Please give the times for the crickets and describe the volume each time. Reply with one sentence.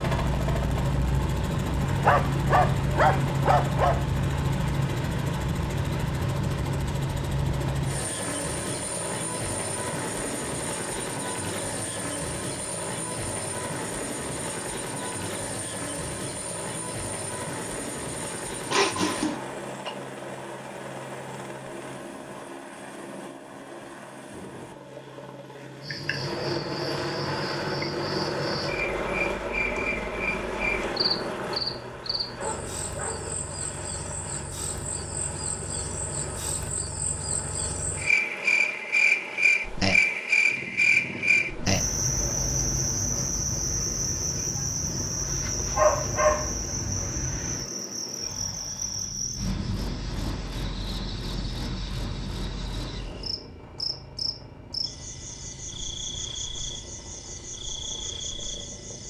The crickets can be heard from 25.8 to 59.0 s, getting louder then quieter.